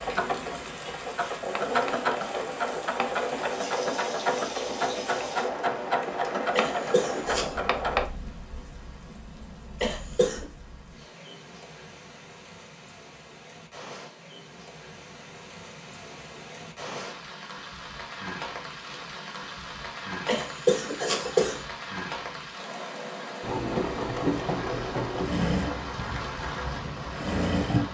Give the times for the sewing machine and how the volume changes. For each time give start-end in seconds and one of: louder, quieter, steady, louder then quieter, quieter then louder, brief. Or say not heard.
0.0-8.1 steady
23.4-27.8 quieter then louder.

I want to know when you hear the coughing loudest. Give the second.
21 s.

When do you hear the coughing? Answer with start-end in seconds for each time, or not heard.
6.5-7.5, 9.8-10.4, 20.2-21.6.